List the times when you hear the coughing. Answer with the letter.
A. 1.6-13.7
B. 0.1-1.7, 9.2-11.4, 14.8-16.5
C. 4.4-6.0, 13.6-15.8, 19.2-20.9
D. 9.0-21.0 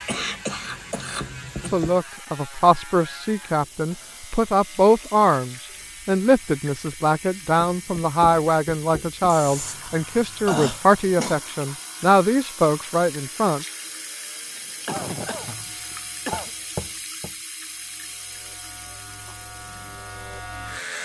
B.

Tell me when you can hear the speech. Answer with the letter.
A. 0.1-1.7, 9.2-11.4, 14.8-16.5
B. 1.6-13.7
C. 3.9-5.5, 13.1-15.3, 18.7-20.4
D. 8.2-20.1
B.